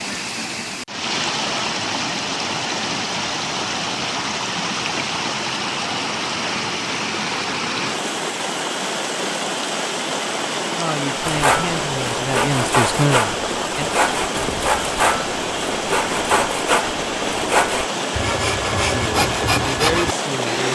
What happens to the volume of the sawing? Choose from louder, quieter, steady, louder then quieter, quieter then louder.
steady.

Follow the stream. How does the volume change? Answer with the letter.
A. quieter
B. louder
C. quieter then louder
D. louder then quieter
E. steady
E.